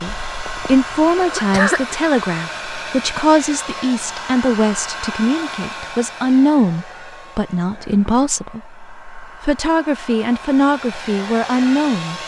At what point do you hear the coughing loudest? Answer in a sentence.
The volume of the coughing peaks at 2 seconds.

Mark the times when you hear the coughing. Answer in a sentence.
The coughing can be heard from 0.1 to 2.0 s.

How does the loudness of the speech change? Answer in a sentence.
The volume of the speech stays about the same.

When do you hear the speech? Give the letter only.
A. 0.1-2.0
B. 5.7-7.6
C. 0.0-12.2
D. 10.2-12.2
C.